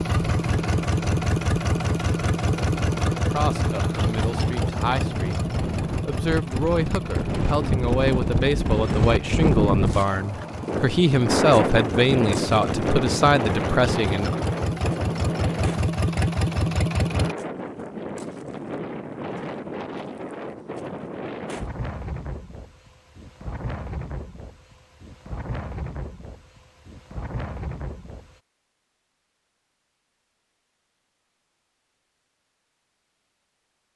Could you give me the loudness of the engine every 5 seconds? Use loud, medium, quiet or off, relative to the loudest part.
loud, medium, medium, loud, off, off, off.